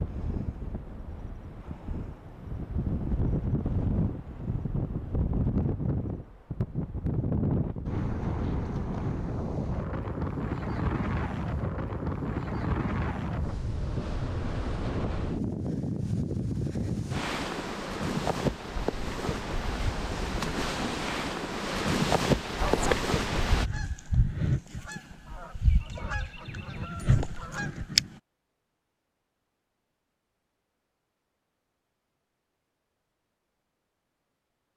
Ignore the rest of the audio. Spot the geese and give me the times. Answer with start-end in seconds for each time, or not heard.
22.6-28.1.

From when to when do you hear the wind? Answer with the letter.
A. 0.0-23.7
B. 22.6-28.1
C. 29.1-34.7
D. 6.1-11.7
A.